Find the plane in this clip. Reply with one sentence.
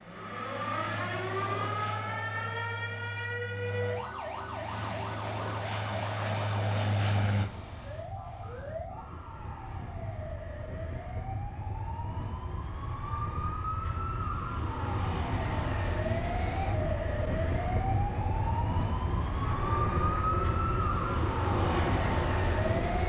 You can hear the plane from 0.0 to 7.5 s and from 14.9 to 23.0 s.